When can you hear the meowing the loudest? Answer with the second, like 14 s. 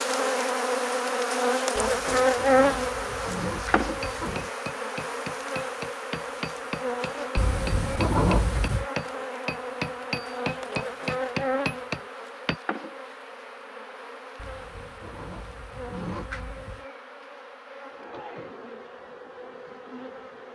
8 s.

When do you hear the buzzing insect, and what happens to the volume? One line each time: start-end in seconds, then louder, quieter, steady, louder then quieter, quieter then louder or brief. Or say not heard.
0.0-20.4 quieter.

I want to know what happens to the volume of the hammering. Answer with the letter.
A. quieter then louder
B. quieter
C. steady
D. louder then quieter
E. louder
E.